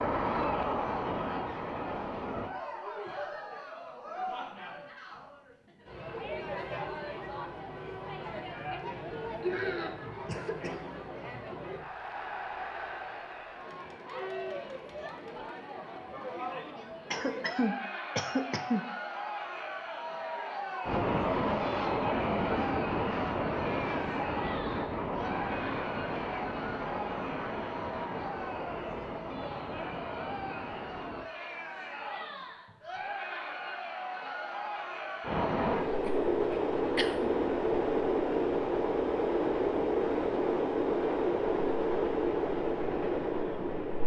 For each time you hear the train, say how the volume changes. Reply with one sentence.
The train can be heard briefly from 0.0 to 2.5 s; from 20.9 to 31.3 s, getting quieter; and from 35.2 to 44.0 s, at a steady volume.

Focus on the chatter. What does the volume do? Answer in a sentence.
The loudness of the chatter stays about the same.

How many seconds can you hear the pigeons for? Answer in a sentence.
You can't hear the pigeons here.